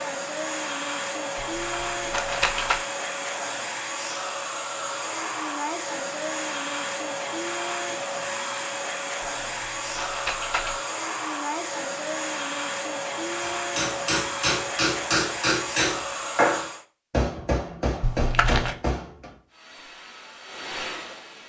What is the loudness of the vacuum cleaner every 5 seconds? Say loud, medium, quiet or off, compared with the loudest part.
loud, loud, loud, loud, medium.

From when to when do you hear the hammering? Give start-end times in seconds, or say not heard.
13.4-19.4.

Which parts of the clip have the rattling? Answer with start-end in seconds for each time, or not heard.
1.4-2.9, 9.2-10.8, 18.0-18.8.